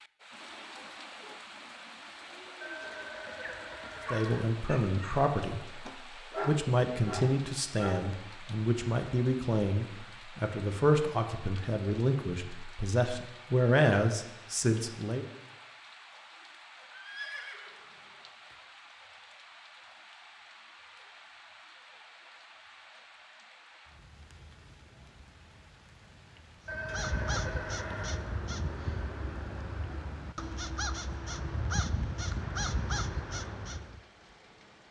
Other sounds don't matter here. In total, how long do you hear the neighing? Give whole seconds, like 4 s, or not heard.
5 s.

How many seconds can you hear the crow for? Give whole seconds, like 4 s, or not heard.
7 s.